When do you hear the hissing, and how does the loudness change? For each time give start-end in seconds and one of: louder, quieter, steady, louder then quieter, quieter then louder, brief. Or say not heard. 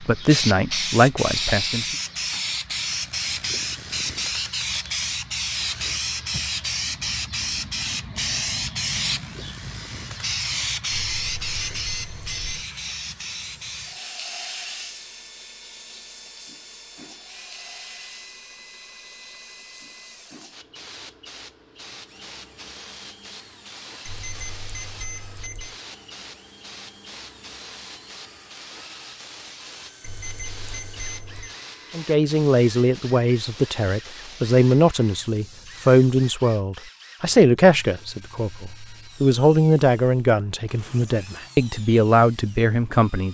0.0-36.4 quieter.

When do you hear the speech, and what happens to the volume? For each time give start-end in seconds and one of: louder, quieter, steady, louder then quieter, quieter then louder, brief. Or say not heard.
0.0-1.9 brief
31.9-43.2 steady.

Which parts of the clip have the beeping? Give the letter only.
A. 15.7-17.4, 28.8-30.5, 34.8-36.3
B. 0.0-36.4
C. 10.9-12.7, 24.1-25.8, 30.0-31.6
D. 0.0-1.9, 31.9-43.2
C.